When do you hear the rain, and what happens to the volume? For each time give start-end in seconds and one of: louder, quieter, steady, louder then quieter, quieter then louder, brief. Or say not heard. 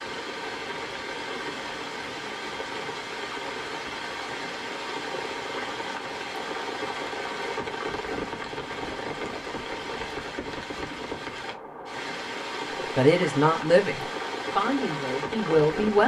0.0-16.0 steady.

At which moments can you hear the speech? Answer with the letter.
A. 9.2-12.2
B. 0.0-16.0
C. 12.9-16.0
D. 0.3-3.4
C.